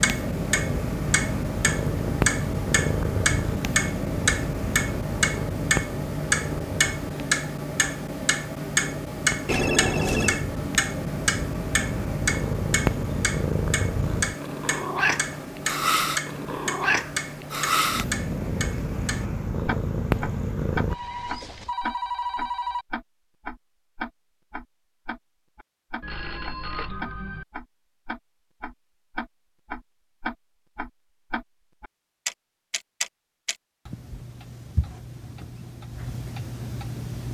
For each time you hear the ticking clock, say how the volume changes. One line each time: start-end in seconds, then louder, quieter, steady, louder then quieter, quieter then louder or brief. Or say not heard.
0.0-37.3 quieter.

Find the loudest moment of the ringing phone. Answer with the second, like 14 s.
10 s.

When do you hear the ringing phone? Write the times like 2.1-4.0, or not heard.
9.4-10.4, 20.9-22.9, 26.0-27.4.